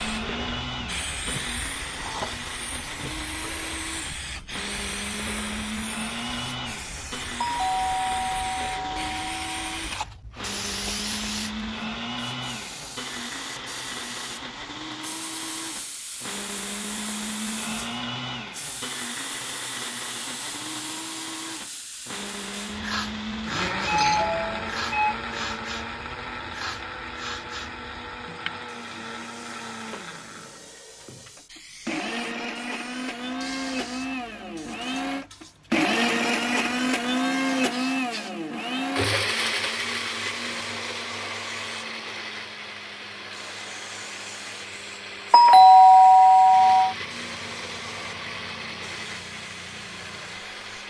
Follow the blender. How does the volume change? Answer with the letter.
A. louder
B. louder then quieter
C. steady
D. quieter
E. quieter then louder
B.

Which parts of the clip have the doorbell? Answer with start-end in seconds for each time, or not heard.
7.4-9.7, 23.9-25.1, 45.3-47.0.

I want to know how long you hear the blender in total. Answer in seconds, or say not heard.
51 s.